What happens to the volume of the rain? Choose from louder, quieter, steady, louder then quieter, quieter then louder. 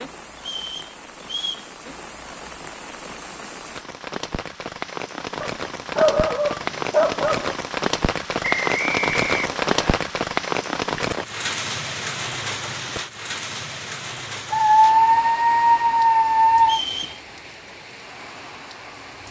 louder then quieter.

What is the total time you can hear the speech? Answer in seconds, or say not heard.
not heard.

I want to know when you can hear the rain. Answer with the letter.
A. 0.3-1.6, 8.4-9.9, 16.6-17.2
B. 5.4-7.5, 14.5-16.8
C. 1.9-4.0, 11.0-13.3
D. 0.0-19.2
D.